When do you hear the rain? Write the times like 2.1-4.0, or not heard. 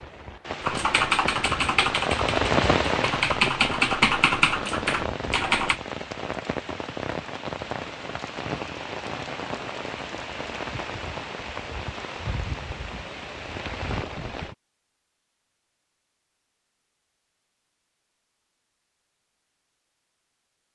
0.0-14.6.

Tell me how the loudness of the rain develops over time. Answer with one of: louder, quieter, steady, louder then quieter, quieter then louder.
quieter.